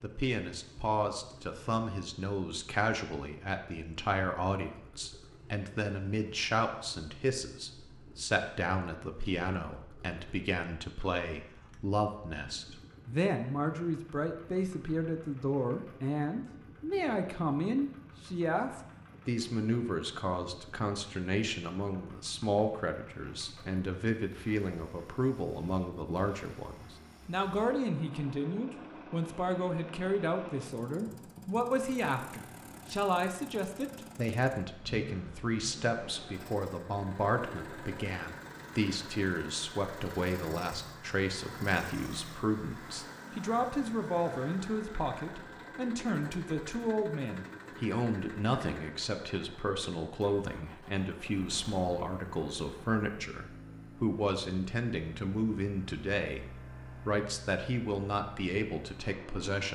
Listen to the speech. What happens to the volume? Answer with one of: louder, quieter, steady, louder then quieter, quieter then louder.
steady.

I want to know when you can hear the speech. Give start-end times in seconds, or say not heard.
0.0-59.7.